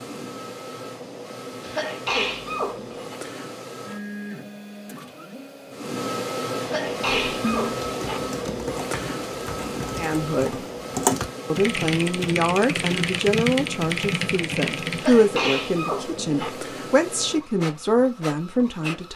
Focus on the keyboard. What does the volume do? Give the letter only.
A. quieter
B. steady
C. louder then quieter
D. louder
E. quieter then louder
D.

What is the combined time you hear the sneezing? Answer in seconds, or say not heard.
5 s.